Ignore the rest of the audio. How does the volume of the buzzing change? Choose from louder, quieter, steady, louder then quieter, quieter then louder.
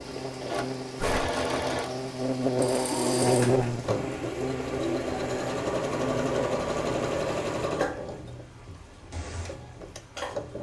louder then quieter.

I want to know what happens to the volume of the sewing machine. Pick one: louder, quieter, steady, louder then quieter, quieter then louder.
quieter.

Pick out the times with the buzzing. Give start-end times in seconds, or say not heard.
0.0-7.2.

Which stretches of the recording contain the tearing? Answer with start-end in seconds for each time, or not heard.
0.9-1.4.